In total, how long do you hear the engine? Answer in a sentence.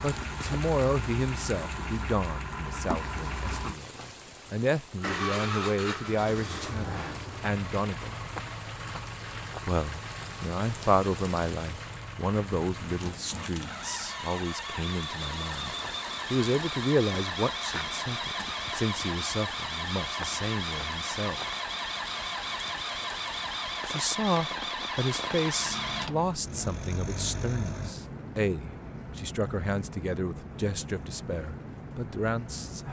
You can hear the engine for 28 seconds altogether.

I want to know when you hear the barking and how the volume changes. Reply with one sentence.
The barking can't be heard in this clip.